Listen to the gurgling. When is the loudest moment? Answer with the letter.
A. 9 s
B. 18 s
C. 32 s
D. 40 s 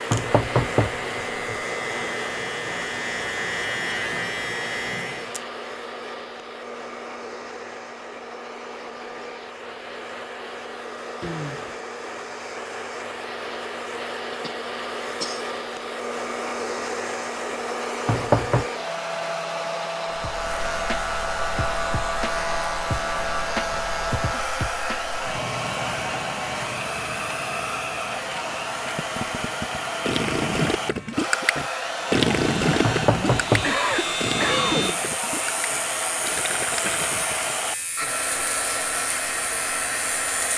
C.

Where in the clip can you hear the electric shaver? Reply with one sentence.
The electric shaver can be heard from 0.0 to 5.5 s and from 20.1 to 40.5 s.